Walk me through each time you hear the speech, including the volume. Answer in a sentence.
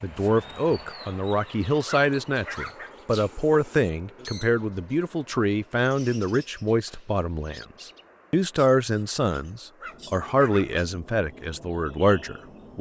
You can hear the speech from 0.0 to 12.7 s, at a steady volume.